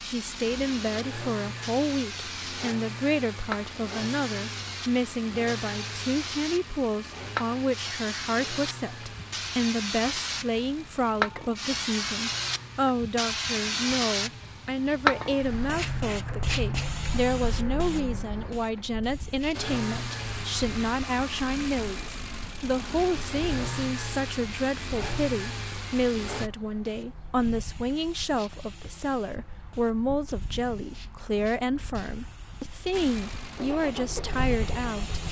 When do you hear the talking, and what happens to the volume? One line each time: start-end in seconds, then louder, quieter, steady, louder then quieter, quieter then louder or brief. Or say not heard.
0.0-35.1 steady.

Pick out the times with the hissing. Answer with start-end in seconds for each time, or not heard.
0.0-35.2.